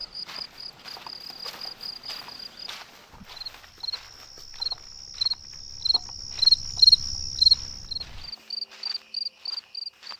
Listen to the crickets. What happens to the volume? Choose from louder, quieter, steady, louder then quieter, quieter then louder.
louder then quieter.